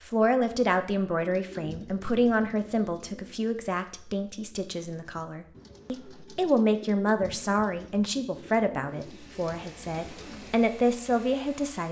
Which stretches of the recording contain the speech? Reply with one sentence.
You can hear the speech from 0.1 to 11.8 s.